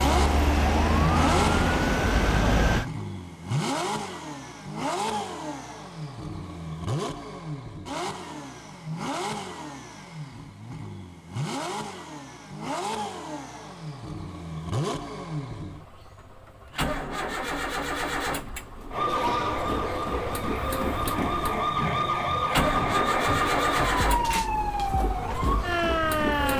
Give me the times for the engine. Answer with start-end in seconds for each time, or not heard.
0.0-26.5.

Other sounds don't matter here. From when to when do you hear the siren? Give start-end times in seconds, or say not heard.
0.0-2.9, 18.9-26.5.